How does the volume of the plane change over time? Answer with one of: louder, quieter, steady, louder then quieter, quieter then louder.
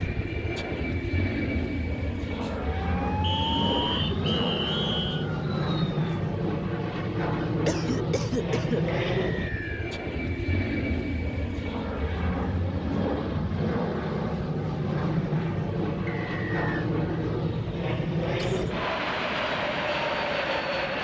steady.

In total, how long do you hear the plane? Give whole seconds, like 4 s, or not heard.
21 s.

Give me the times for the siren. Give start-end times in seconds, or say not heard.
2.8-6.2.